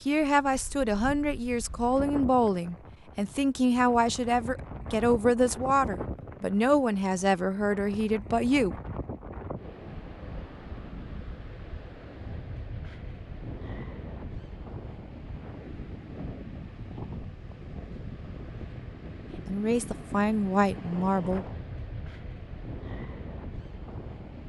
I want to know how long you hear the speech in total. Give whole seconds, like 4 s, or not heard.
11 s.